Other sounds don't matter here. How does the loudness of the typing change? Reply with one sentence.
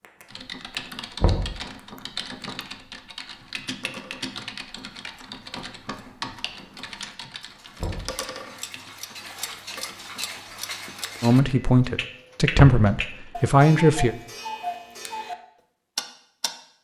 The volume of the typing goes down.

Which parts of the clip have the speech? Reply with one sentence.
You can hear the speech from 11.2 to 14.2 s.